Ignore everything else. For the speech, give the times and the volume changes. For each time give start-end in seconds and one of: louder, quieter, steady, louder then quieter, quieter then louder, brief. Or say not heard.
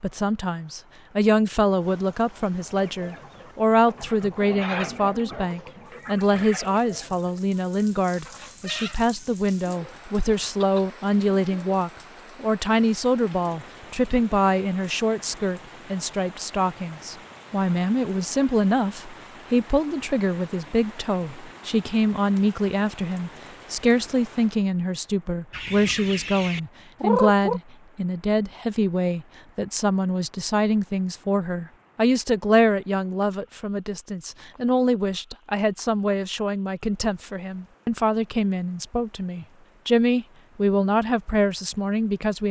0.0-42.4 steady.